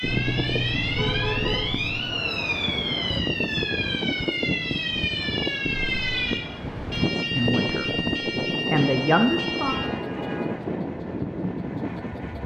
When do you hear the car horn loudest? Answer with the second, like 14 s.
1 s.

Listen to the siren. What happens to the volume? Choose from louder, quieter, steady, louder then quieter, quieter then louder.
steady.